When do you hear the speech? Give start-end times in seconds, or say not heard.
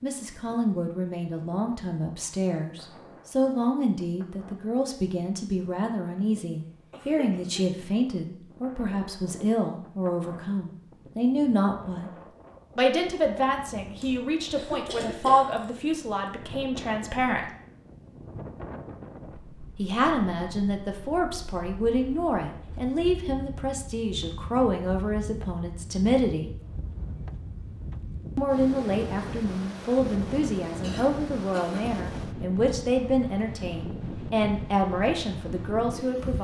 0.0-12.1, 12.8-17.4, 19.8-26.5, 28.4-36.3.